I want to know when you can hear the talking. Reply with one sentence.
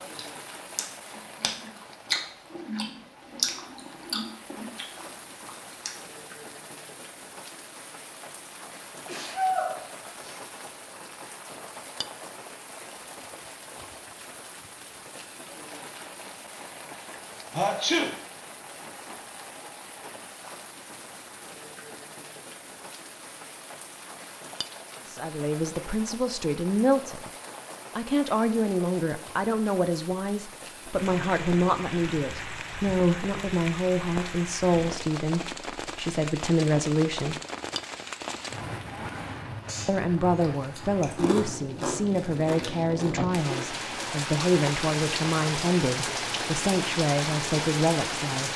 The talking can be heard from 25.1 to 27.3 s, from 27.9 to 37.4 s and from 39.9 to 48.5 s.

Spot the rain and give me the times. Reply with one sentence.
You can hear the rain from 0.0 to 48.5 s.